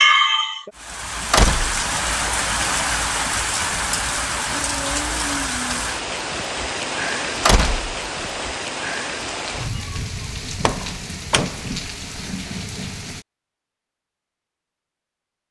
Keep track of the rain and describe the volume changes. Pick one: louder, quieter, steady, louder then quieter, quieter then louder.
quieter.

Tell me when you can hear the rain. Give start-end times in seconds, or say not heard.
0.0-13.2.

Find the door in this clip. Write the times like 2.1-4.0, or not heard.
1.3-2.3, 7.5-8.4, 10.6-11.7.